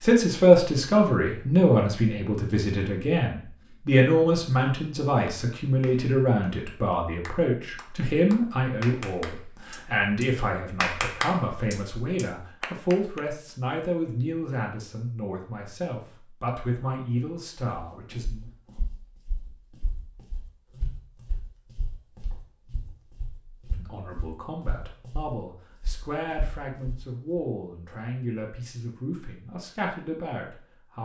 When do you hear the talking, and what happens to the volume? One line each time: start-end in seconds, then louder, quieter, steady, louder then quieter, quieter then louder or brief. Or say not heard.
0.0-18.5 quieter
23.8-30.9 steady.